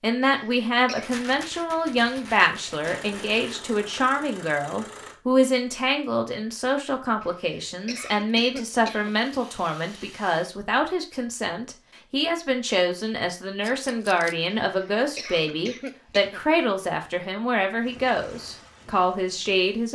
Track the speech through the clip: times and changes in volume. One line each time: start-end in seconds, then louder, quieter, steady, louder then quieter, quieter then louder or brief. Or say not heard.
0.0-19.9 steady.